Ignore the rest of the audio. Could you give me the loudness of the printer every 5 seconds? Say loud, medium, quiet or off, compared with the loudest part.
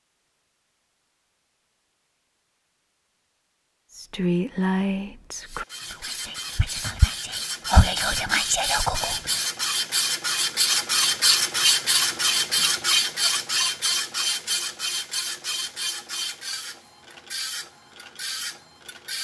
off, medium, loud, medium.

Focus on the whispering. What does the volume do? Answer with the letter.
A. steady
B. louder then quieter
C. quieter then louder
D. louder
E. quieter
C.